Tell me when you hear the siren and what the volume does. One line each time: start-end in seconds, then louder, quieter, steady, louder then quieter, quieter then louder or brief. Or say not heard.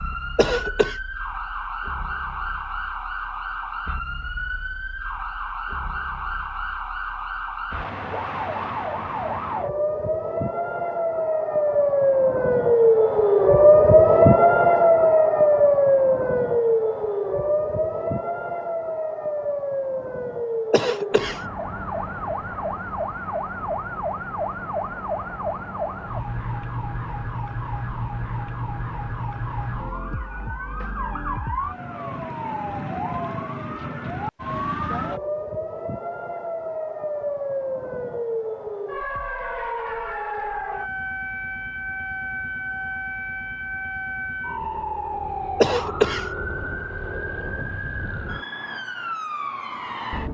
0.0-50.2 louder then quieter.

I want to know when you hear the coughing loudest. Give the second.
46 s.